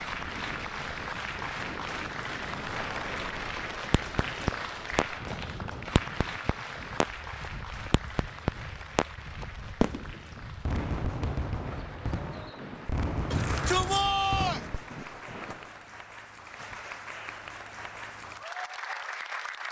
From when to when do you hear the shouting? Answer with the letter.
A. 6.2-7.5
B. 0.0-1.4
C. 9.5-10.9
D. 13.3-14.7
D.